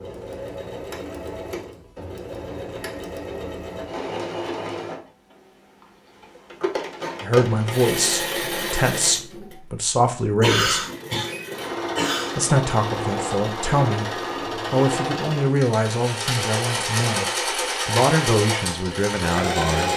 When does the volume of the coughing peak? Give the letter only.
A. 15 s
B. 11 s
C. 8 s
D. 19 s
B.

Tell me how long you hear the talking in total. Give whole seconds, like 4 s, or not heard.
11 s.